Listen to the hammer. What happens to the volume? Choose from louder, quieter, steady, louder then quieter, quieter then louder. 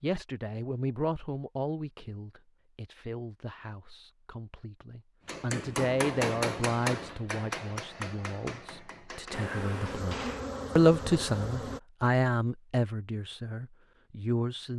quieter.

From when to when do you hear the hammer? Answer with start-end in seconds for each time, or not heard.
5.2-10.5.